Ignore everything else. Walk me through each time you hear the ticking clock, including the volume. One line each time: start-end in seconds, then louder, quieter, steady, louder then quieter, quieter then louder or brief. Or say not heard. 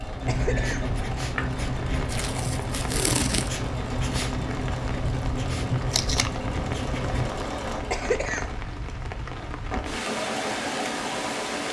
not heard.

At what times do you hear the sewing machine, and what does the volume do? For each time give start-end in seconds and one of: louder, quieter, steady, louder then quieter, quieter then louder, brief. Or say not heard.
0.0-11.6 louder.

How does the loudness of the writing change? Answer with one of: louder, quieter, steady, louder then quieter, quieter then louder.
steady.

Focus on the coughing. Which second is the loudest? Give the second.
8 s.